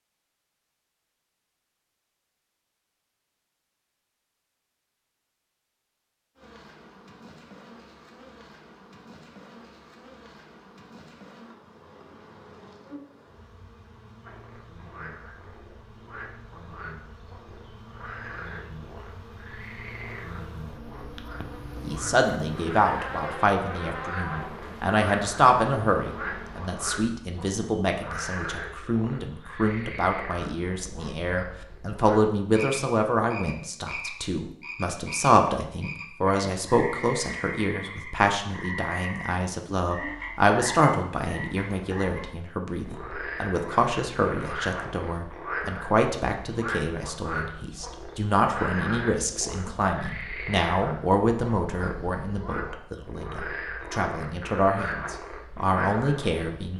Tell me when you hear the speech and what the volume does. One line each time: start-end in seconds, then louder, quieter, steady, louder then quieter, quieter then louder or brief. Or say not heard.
21.8-56.7 steady.